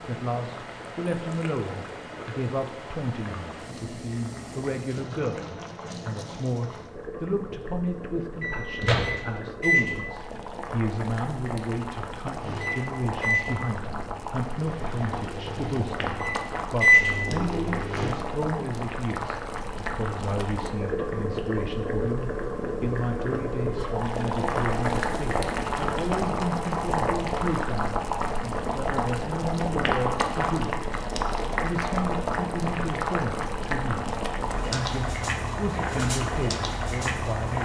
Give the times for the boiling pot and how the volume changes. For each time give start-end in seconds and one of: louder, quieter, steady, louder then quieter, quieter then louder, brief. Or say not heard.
0.0-37.6 louder.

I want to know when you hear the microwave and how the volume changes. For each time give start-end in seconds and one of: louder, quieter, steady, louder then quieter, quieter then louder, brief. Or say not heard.
8.4-9.9 brief
12.4-18.1 quieter then louder.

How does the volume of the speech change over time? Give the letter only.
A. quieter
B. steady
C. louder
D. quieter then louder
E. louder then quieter
B.